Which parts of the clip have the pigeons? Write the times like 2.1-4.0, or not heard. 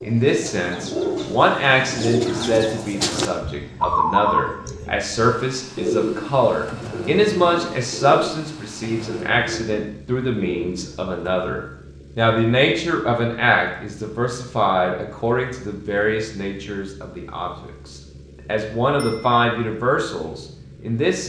0.0-11.5.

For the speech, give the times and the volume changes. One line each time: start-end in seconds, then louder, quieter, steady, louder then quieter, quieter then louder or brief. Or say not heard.
0.0-21.2 steady.